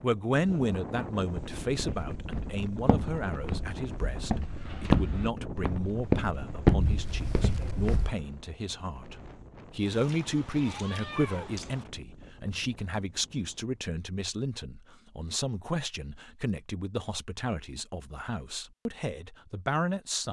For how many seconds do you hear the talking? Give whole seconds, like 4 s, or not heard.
20 s.